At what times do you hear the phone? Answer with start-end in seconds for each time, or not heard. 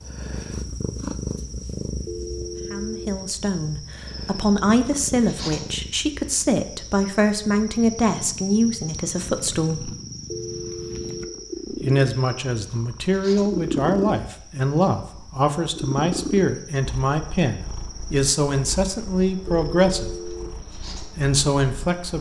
2.0-3.1, 10.3-11.3, 19.4-20.5.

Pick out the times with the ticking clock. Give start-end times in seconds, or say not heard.
not heard.